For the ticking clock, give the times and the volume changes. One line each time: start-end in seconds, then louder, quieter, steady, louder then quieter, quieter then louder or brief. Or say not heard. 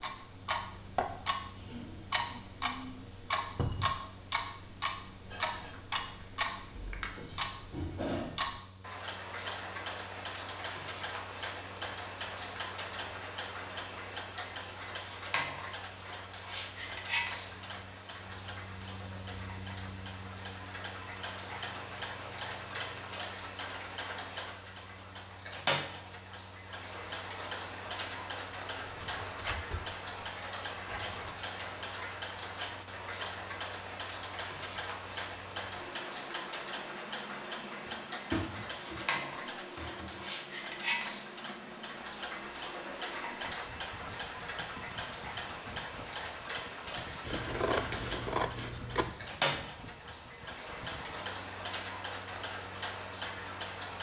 0.0-53.9 steady.